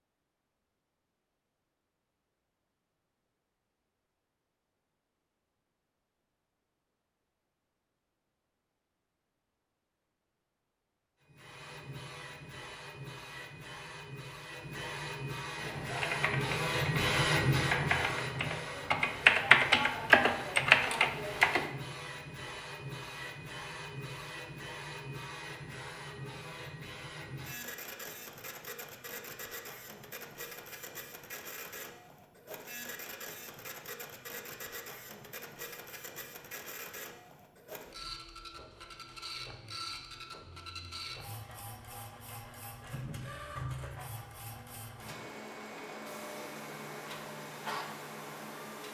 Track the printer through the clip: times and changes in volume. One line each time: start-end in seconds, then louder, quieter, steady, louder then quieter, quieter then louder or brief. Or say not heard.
11.2-48.8 quieter.